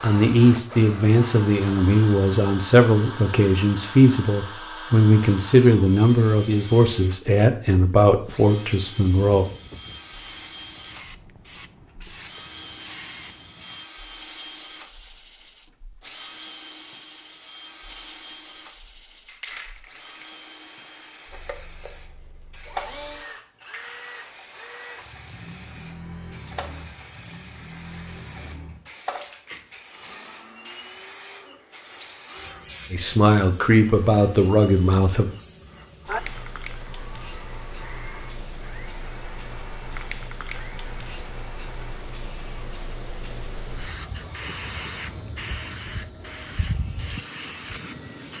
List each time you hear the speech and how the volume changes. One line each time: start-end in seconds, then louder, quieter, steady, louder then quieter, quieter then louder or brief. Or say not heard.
0.0-9.4 steady
32.9-35.3 brief.